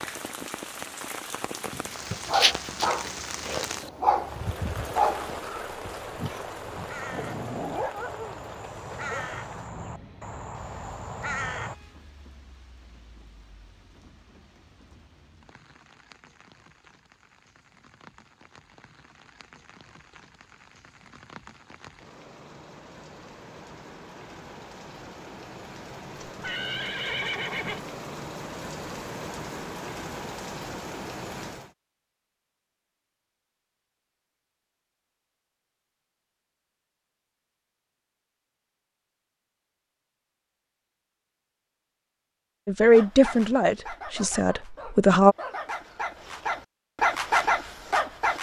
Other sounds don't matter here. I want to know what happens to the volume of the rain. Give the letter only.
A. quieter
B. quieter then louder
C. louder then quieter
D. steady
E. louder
B.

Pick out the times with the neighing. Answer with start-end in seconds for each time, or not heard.
26.2-27.9.